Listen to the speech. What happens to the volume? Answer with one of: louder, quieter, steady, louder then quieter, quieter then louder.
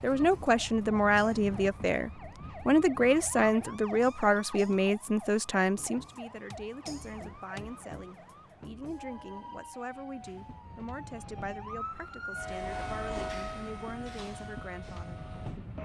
quieter.